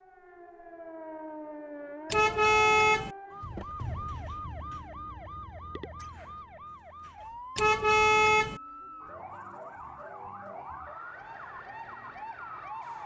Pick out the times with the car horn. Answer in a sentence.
The car horn can be heard from 2.1 to 3.1 s and from 7.5 to 8.6 s.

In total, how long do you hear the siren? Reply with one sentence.
The siren can be heard for 13 seconds in total.